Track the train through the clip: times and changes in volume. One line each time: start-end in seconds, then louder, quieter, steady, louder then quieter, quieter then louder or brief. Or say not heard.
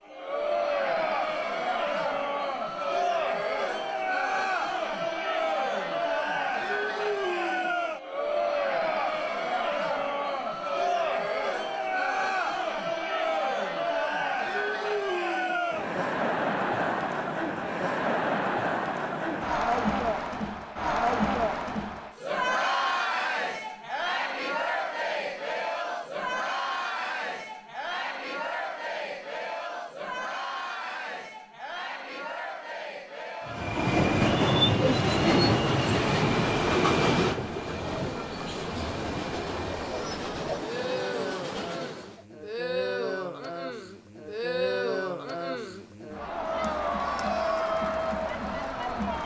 33.5-42.2 quieter.